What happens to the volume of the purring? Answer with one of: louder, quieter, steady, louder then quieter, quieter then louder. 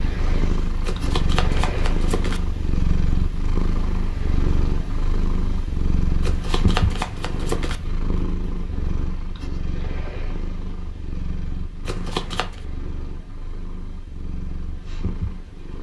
quieter.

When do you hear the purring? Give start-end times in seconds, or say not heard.
0.0-15.7.